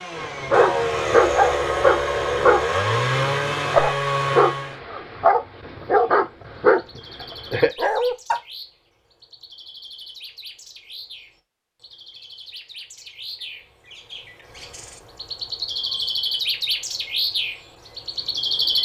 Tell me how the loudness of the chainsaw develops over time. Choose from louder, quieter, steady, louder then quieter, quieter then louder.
steady.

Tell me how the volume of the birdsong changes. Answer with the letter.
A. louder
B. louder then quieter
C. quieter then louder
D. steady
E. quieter
A.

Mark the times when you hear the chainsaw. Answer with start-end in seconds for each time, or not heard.
0.0-4.8.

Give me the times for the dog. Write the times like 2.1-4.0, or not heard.
0.1-8.4.